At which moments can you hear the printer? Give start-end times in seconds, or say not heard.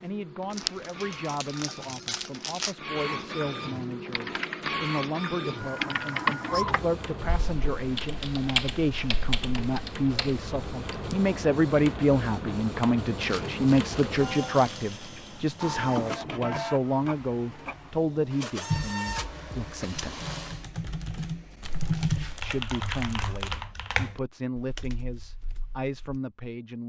0.0-20.6.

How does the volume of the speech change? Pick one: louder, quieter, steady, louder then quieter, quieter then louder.
louder then quieter.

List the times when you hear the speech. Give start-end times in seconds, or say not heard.
0.0-20.2, 22.4-26.8.